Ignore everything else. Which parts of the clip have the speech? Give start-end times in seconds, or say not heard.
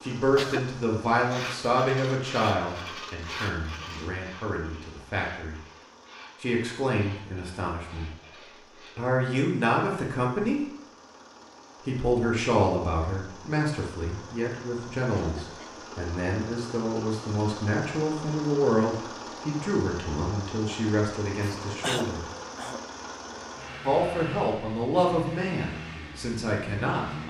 0.0-5.6, 6.4-8.1, 8.9-10.7, 11.8-22.2, 23.8-27.2.